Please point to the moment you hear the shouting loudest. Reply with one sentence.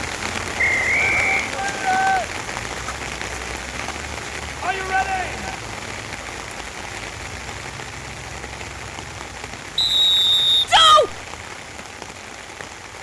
The volume of the shouting peaks at 11 seconds.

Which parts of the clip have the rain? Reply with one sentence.
You can hear the rain from 0.0 to 12.9 s.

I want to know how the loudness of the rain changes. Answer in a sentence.
The loudness of the rain goes down.